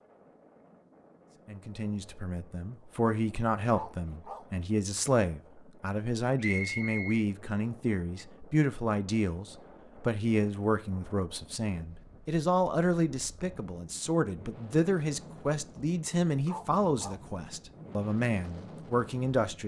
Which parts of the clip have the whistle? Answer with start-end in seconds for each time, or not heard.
6.3-7.2.